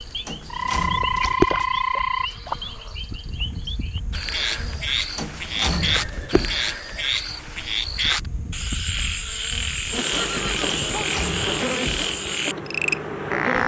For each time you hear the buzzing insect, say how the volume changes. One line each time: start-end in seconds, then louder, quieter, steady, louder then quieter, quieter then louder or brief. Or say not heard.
0.0-13.6 quieter then louder.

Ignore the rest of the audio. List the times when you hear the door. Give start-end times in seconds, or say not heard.
0.2-1.2, 5.2-6.7, 10.7-12.2.